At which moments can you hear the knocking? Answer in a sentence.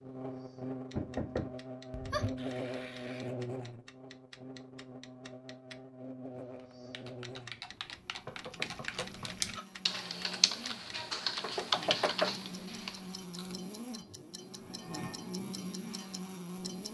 The knocking can be heard from 0.9 to 2.4 s, from 8.2 to 9.3 s and from 11.4 to 12.3 s.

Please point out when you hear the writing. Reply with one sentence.
The writing can't be heard in this clip.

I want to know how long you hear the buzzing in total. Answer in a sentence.
The buzzing can be heard for 17 seconds in total.